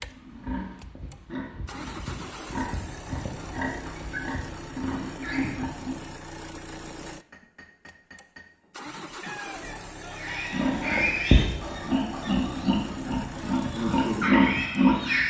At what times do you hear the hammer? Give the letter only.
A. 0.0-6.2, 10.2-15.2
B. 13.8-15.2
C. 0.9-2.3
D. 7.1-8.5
D.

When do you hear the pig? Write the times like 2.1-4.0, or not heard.
0.0-6.2, 10.2-15.2.